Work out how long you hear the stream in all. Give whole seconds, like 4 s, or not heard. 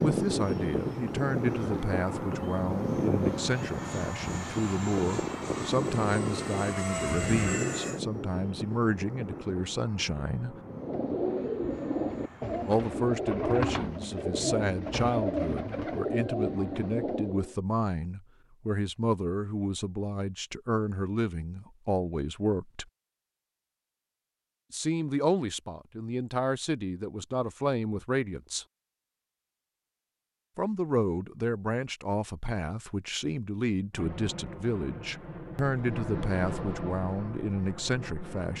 not heard.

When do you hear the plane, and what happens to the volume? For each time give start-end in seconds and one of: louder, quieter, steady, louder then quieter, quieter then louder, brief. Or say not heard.
0.0-12.9 quieter
33.9-38.5 louder then quieter.